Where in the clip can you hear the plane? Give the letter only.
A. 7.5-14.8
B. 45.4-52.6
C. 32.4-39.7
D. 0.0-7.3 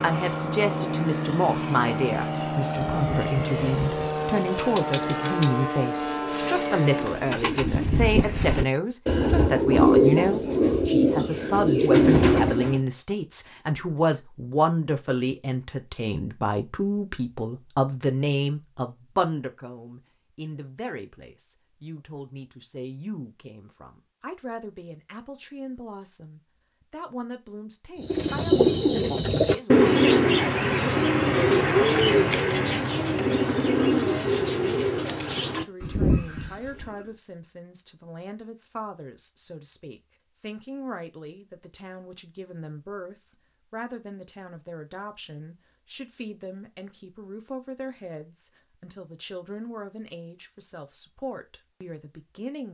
D.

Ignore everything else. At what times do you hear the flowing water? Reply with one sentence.
The flowing water can't be heard in this clip.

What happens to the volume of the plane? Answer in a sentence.
The loudness of the plane stays about the same.